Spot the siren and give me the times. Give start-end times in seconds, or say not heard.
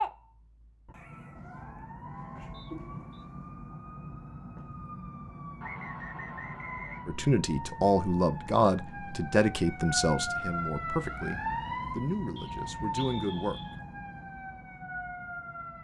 0.0-15.7.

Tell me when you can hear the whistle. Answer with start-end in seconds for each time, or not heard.
2.5-3.2, 5.6-7.2, 12.3-13.8.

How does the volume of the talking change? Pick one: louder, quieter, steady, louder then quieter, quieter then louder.
quieter.